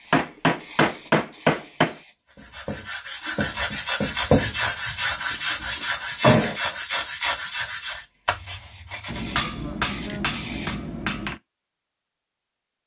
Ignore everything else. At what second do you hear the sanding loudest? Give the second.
4 s.